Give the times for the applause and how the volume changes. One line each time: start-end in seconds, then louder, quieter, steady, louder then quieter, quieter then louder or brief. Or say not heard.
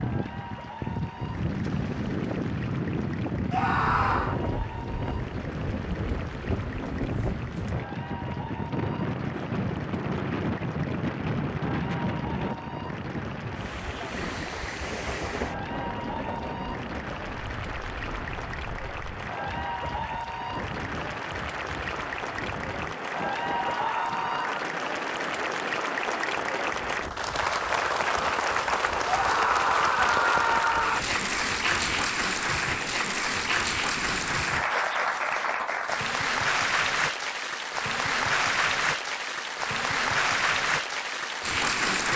0.0-42.1 louder.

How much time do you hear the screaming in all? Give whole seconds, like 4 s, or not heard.
4 s.